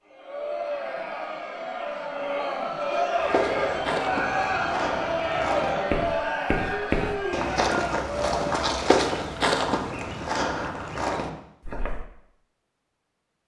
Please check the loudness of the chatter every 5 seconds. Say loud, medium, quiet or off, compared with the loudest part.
loud, loud, off.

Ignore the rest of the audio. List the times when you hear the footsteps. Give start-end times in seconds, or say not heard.
3.1-12.0.